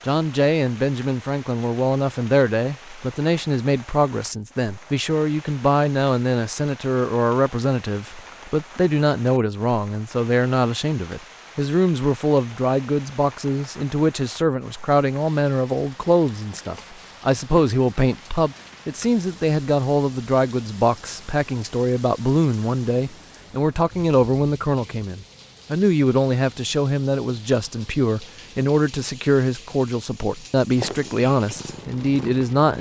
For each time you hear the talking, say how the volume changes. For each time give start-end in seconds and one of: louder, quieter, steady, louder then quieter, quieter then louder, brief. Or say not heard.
0.1-32.7 steady.